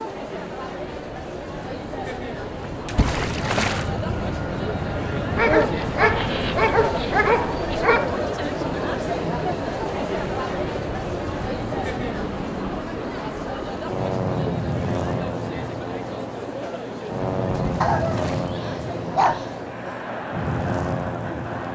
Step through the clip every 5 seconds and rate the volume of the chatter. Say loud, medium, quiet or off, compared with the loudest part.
medium, loud, loud, medium, medium.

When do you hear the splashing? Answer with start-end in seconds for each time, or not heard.
2.9-3.9, 17.6-18.6.